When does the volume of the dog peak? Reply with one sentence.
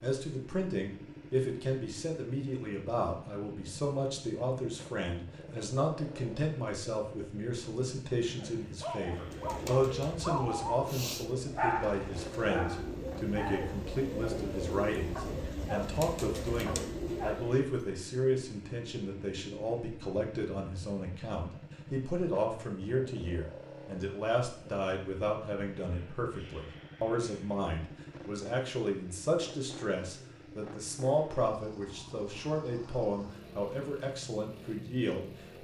The volume of the dog peaks at 12 seconds.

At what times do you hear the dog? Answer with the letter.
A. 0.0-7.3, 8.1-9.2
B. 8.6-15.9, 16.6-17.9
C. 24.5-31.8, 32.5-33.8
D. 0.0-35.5
B.